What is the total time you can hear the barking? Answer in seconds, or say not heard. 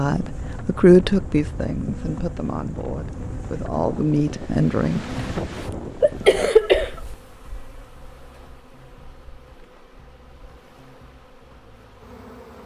not heard.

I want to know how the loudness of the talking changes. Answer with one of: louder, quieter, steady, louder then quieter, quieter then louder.
quieter then louder.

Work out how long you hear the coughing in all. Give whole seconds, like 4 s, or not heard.
2 s.